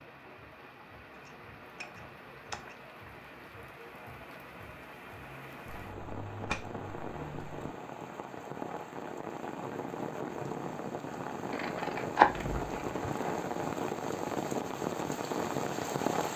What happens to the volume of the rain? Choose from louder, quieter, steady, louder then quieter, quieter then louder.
louder.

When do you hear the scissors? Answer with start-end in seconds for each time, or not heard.
1.2-2.8, 5.8-7.6, 11.5-13.4.